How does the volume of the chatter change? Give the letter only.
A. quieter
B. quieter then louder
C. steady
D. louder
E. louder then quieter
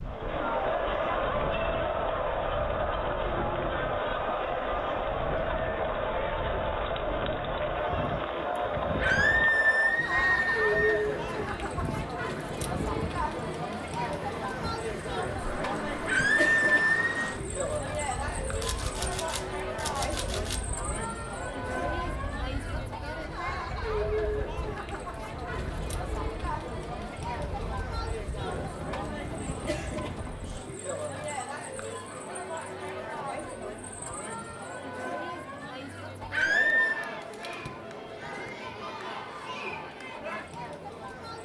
A.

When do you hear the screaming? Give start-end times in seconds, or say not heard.
9.0-11.0, 16.1-17.2, 36.3-37.0.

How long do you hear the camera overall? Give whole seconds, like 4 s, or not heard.
2 s.